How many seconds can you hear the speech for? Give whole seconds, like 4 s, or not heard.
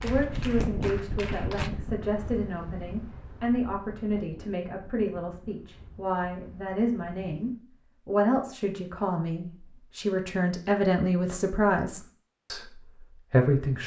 14 s.